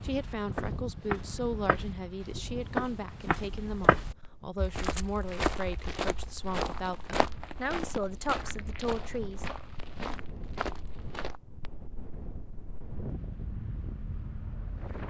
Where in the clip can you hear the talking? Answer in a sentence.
The talking can be heard from 0.0 to 9.4 s.